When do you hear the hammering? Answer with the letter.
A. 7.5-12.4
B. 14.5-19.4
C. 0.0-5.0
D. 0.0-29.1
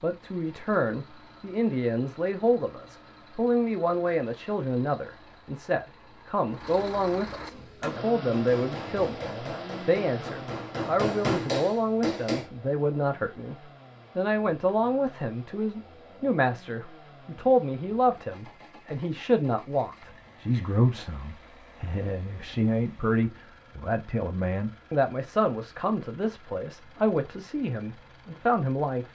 A.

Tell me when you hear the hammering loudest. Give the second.
11 s.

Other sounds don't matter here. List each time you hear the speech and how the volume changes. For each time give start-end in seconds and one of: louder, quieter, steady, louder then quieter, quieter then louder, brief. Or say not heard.
0.0-29.1 steady.